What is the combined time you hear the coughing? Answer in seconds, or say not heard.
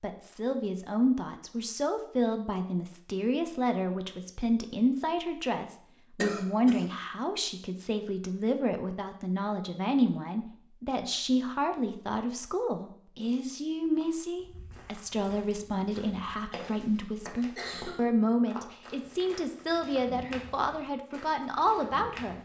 2 s.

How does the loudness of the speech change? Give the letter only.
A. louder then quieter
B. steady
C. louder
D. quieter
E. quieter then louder
B.